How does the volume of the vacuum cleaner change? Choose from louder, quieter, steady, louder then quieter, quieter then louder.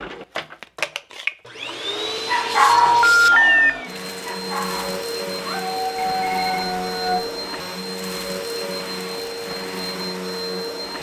steady.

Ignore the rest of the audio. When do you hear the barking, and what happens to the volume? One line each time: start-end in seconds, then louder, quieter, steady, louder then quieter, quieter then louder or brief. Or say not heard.
2.1-7.2 quieter then louder.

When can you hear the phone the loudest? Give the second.
3 s.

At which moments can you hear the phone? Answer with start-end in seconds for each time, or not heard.
2.6-3.7, 6.0-7.3.